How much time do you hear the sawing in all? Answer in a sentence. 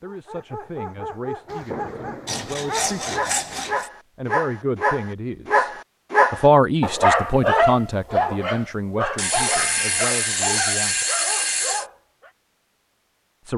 The sawing can be heard for 4 seconds in total.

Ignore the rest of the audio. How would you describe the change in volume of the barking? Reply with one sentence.
The volume of the barking goes up, then down.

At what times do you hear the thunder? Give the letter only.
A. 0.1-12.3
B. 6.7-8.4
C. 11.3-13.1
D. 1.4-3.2
D.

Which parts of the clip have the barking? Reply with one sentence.
You can hear the barking from 0.1 to 12.3 s.